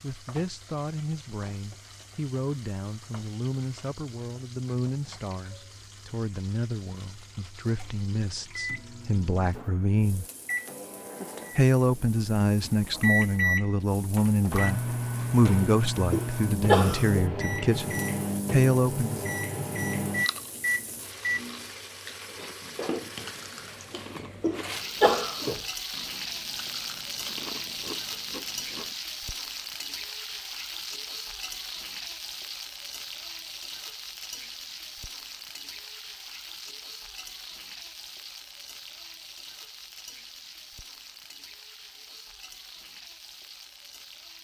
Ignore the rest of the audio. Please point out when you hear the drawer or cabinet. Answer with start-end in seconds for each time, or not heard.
not heard.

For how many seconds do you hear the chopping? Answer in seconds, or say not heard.
not heard.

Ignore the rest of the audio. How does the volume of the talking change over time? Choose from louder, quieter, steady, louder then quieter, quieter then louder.
louder.